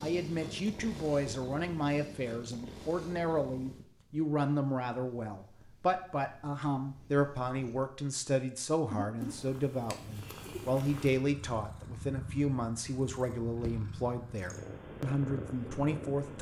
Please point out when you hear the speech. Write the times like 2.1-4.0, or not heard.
0.0-16.3.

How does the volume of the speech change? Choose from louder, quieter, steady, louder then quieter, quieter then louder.
steady.